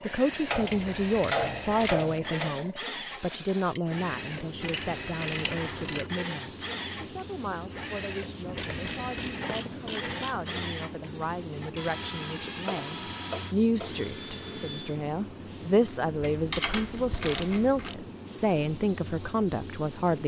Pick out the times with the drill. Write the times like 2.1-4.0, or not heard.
0.0-15.0.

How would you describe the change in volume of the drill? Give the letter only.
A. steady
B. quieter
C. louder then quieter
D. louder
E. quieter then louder
A.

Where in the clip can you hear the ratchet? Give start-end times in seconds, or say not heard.
0.5-2.5, 4.6-6.1, 8.4-10.4, 12.7-14.1, 16.2-17.9.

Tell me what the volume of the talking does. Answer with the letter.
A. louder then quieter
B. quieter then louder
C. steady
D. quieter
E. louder
B.